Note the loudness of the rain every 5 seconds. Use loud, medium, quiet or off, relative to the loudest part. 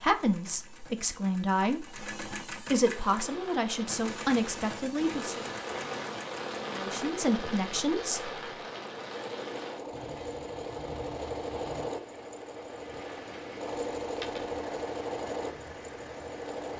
medium, loud, medium, medium.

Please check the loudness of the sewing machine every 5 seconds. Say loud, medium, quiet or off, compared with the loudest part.
medium, medium, loud, loud.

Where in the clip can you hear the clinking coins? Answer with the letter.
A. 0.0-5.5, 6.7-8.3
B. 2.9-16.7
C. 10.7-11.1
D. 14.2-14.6
D.